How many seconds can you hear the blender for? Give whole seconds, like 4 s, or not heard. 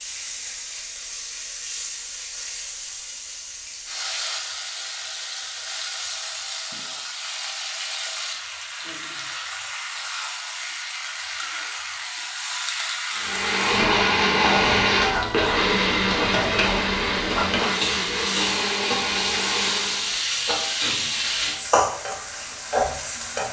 7 s.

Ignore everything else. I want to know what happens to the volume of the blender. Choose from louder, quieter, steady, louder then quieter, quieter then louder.
quieter.